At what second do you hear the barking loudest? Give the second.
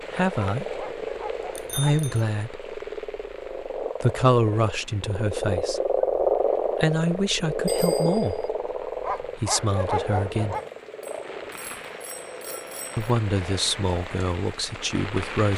10 s.